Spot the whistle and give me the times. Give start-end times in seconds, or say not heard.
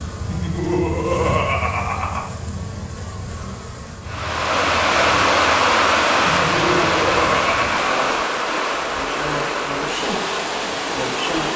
not heard.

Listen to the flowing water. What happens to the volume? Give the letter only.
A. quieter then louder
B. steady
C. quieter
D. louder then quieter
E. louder
C.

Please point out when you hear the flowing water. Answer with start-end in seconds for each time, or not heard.
4.0-11.5.